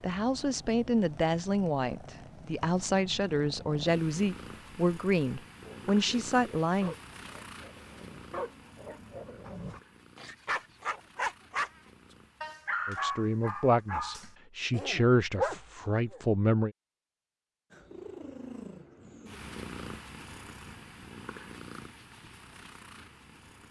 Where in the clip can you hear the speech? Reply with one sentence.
You can hear the speech from 0.0 to 7.0 s and from 12.8 to 16.7 s.